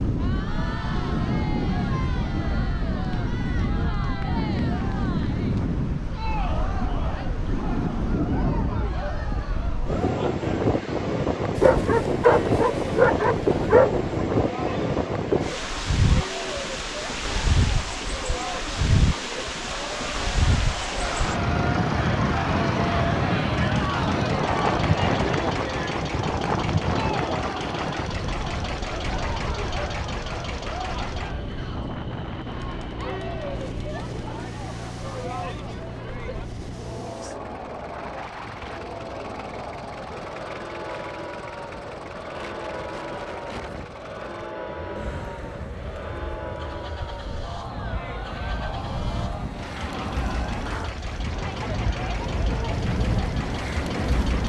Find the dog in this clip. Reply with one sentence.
You can hear the dog from 11.6 to 14.1 s.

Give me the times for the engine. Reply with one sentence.
The engine can be heard from 21.0 to 54.4 s.